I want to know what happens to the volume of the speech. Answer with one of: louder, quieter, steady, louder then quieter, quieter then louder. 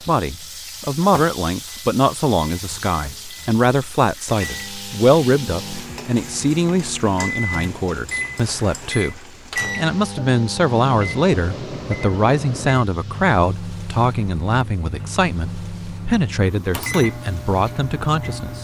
steady.